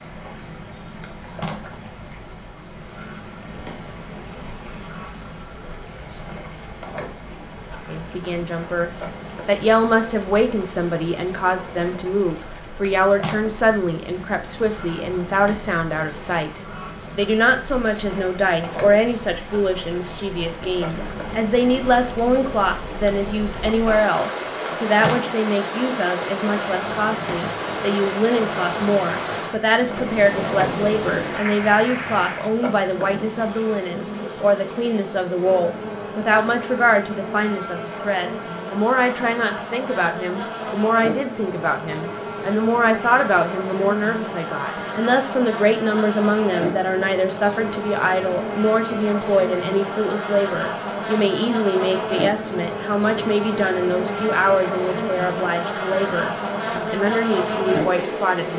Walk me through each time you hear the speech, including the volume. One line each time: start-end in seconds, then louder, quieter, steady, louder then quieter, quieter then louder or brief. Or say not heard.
7.9-58.5 steady.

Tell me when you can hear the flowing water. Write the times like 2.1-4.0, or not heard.
0.0-32.5.